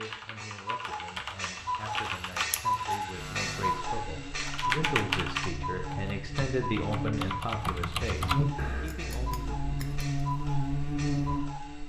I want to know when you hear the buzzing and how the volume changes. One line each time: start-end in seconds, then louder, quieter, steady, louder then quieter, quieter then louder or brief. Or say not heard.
3.1-11.8 louder.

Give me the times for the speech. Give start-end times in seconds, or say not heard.
0.0-9.8.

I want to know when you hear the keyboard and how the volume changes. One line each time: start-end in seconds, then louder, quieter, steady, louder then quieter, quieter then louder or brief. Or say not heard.
0.0-2.6 brief
4.3-8.6 quieter then louder.